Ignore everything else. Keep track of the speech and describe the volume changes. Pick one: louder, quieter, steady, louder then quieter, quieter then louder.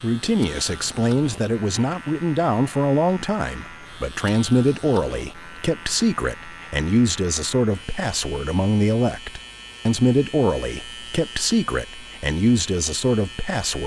steady.